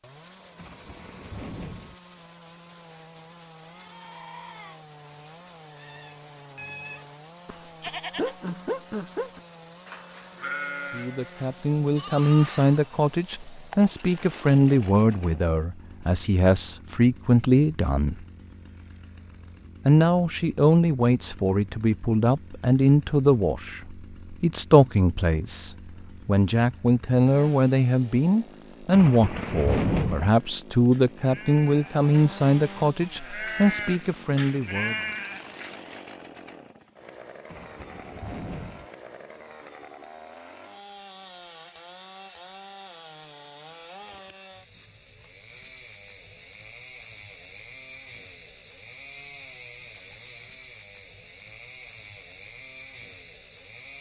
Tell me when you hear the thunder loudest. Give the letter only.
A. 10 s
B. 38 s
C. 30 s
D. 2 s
C.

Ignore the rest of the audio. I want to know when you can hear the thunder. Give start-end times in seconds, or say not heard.
0.6-1.9, 28.9-30.3, 37.5-38.9.